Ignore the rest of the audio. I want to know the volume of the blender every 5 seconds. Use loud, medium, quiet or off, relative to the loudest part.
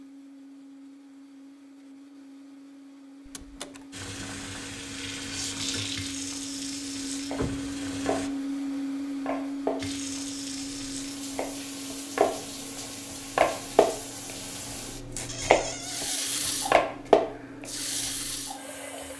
quiet, loud, medium, quiet.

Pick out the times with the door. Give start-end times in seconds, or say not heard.
3.2-3.9, 7.3-7.8, 15.2-16.5.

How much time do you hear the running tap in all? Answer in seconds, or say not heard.
14 s.